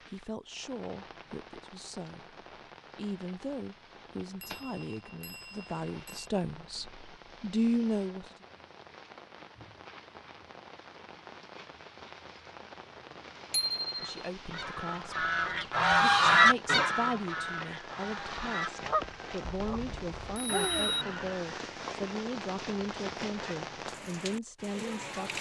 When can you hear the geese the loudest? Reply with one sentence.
The volume of the geese peaks at 16 seconds.